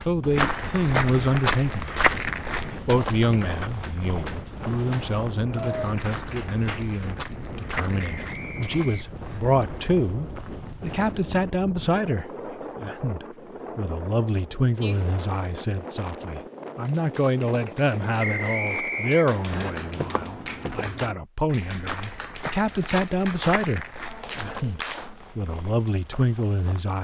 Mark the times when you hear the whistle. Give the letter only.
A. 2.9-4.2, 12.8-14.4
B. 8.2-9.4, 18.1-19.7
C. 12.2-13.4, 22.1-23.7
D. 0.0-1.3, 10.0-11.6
B.